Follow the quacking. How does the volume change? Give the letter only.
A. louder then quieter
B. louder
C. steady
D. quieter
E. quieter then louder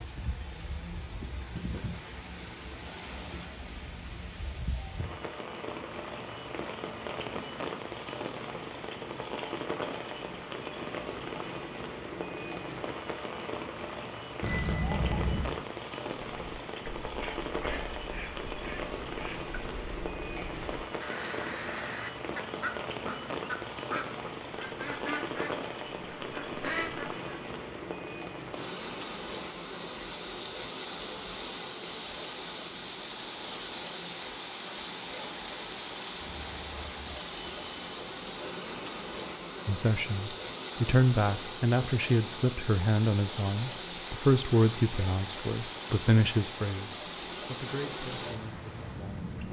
B.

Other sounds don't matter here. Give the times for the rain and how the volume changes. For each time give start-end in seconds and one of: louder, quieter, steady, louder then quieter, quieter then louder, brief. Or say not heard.
0.0-49.4 steady.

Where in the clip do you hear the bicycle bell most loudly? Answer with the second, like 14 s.
15 s.